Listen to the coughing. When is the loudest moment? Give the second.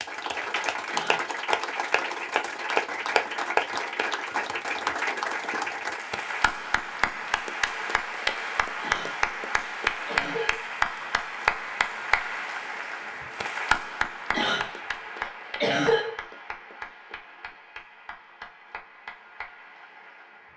16 s.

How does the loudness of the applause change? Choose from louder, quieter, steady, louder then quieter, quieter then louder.
quieter.